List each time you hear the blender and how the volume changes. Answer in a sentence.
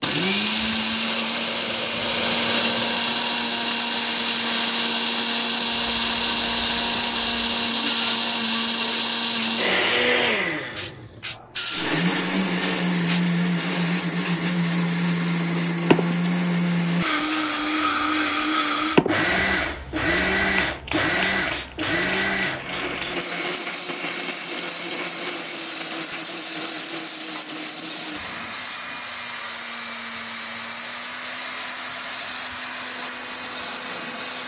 You can hear the blender from 0.0 to 34.4 s, getting quieter.